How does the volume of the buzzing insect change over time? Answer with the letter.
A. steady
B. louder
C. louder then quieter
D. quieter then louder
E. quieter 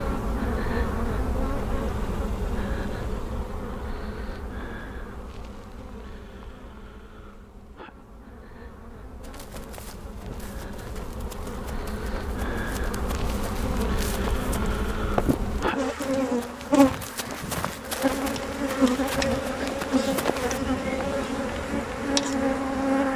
D.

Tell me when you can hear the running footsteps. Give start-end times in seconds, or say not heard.
9.2-20.6.